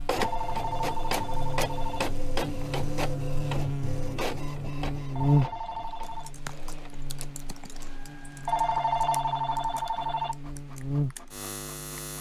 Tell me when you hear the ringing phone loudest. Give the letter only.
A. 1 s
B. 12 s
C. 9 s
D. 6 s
C.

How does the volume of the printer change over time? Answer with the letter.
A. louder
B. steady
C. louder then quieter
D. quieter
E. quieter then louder
D.